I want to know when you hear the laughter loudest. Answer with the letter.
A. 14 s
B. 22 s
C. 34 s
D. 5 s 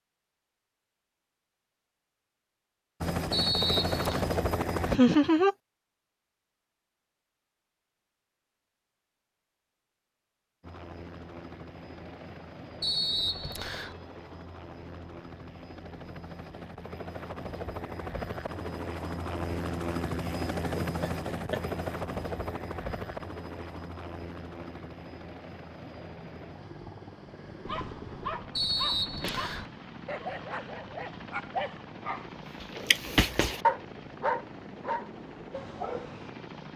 D.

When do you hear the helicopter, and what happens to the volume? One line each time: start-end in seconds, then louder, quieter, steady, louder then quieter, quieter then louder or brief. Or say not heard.
3.0-5.0 brief
10.6-36.7 louder then quieter.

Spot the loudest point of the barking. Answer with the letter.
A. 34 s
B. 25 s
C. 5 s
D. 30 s
A.